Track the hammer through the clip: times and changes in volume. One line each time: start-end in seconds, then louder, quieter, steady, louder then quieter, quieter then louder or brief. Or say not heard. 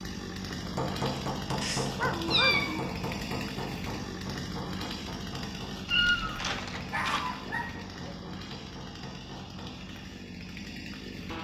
0.6-10.1 quieter.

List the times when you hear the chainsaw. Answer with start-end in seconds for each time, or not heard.
0.0-11.3.